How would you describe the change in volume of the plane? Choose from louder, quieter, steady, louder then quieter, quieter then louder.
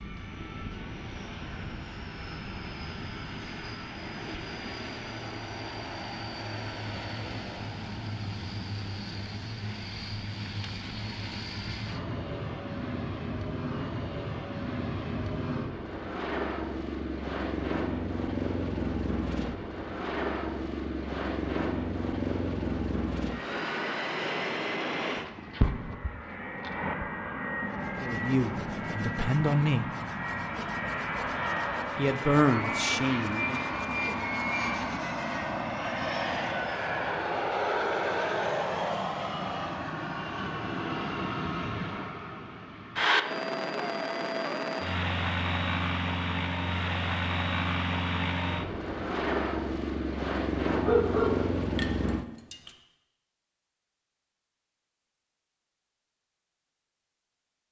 louder.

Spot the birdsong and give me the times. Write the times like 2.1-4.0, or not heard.
not heard.